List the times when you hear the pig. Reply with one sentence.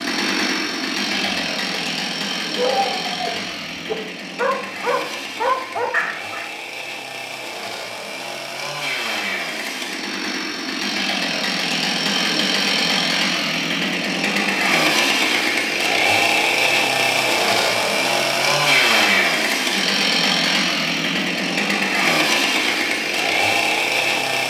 You can't hear the pig here.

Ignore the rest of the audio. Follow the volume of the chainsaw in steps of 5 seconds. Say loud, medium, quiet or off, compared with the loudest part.
medium, medium, loud, loud, loud.